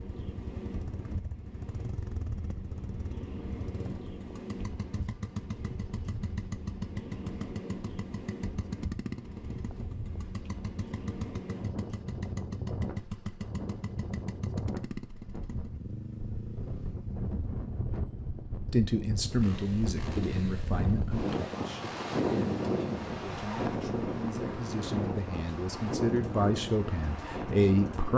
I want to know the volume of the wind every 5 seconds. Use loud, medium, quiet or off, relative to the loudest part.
medium, medium, medium, medium, loud, loud.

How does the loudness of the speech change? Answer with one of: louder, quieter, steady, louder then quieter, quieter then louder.
quieter then louder.